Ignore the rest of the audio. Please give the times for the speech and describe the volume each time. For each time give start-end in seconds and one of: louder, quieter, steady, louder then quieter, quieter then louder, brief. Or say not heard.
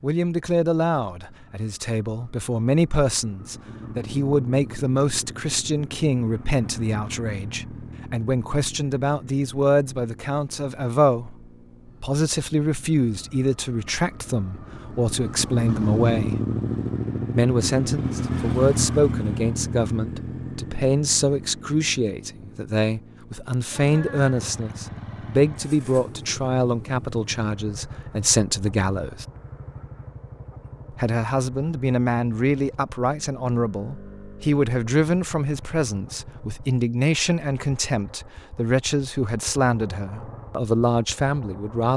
0.0-16.4 steady
17.3-29.2 steady
30.9-41.9 steady.